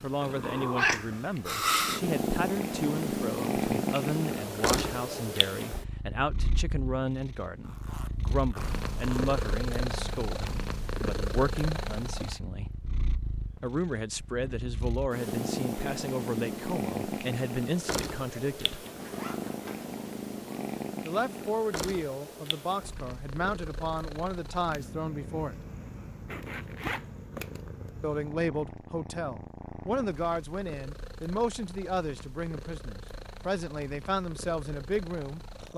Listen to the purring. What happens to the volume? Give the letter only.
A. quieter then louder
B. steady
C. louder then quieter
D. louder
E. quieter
E.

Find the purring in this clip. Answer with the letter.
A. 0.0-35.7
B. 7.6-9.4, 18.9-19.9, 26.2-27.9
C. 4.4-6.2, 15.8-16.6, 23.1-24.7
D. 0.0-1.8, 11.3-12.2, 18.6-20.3
A.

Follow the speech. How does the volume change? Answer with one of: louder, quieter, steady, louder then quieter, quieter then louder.
steady.